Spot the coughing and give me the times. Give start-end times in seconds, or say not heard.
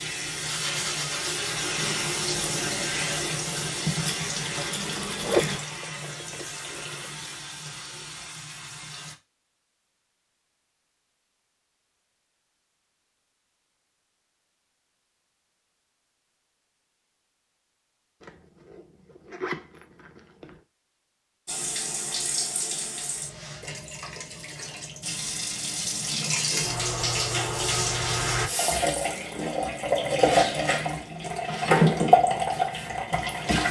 not heard.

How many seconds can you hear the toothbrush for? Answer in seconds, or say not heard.
5 s.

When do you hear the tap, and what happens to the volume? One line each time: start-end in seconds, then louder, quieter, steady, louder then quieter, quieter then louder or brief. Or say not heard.
0.0-9.2 quieter
21.4-33.6 louder.